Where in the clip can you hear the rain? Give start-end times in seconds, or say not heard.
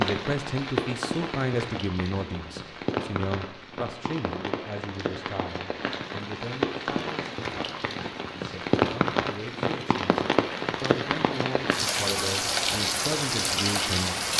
0.0-14.3.